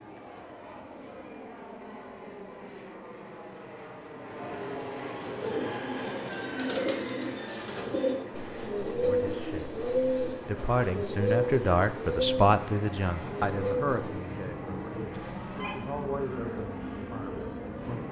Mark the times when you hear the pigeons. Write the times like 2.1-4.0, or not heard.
5.2-14.2.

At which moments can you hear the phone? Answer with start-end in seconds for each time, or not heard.
15.1-15.8.